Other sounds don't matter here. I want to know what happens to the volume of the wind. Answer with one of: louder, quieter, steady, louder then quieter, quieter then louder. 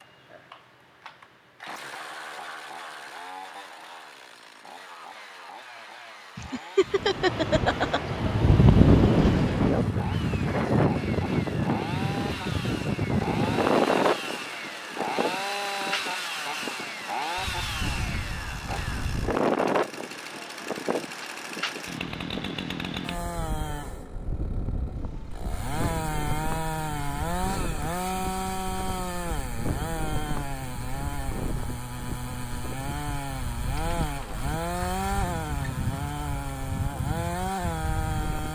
quieter.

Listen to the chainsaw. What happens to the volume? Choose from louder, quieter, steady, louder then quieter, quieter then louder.
louder.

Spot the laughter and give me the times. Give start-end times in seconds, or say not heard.
6.3-8.0.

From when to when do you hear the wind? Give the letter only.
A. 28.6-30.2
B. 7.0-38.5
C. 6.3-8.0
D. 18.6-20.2
B.